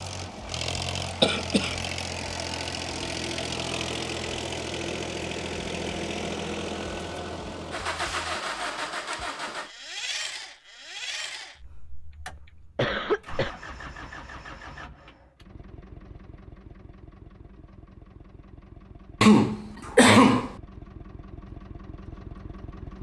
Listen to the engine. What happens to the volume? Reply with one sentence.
The volume of the engine goes down.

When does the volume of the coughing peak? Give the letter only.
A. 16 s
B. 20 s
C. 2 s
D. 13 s
B.